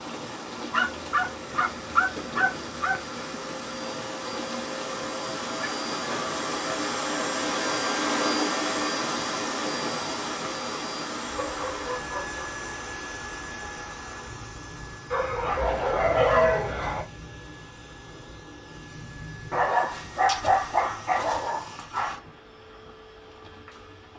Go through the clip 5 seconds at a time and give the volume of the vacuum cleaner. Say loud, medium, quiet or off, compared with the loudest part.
medium, loud, medium, quiet, quiet.